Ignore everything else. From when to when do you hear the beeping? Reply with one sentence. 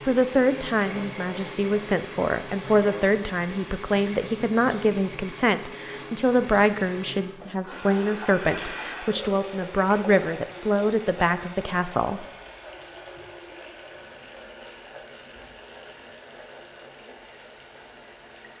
You can't hear the beeping here.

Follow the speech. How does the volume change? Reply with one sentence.
The volume of the speech stays about the same.